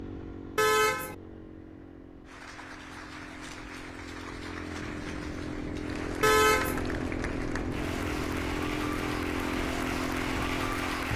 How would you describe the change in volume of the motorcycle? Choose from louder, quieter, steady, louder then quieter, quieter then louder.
louder.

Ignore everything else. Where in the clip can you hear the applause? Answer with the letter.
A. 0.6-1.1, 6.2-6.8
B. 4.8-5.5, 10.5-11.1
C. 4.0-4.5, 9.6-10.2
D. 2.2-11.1
D.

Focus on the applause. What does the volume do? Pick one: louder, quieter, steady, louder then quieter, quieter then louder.
louder.